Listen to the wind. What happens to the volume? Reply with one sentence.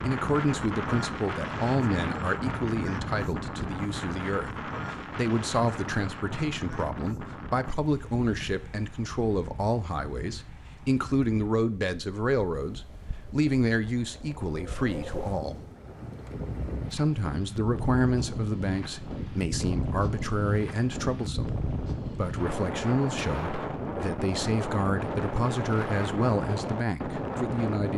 The volume of the wind goes down, then up.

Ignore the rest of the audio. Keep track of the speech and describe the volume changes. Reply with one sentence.
The volume of the speech stays about the same.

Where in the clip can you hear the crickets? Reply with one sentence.
You can't hear the crickets here.